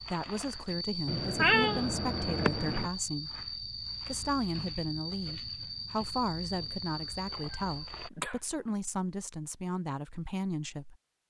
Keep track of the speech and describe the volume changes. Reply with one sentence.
The loudness of the speech stays about the same.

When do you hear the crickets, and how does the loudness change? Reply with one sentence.
The crickets can be heard from 0.0 to 8.1 s, at a steady volume.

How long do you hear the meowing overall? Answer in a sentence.
You can hear the meowing for 3 seconds altogether.